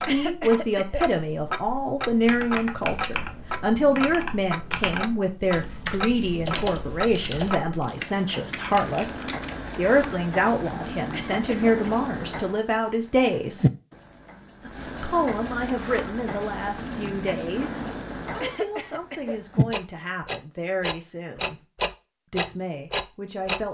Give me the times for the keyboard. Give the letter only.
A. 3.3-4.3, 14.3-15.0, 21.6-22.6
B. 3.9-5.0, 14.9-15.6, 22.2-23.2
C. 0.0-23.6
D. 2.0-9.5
D.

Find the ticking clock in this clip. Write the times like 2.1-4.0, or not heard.
0.0-23.6.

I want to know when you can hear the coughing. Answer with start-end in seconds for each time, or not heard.
0.1-1.1, 11.1-11.8, 18.4-19.4.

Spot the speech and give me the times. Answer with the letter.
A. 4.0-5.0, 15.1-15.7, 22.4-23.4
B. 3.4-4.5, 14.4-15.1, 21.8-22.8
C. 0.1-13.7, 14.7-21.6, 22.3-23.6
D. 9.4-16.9
C.